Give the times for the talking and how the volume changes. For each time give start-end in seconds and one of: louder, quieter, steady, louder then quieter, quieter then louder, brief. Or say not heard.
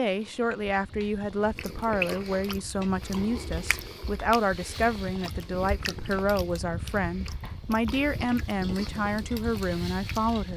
0.0-10.5 steady.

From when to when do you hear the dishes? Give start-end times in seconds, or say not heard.
not heard.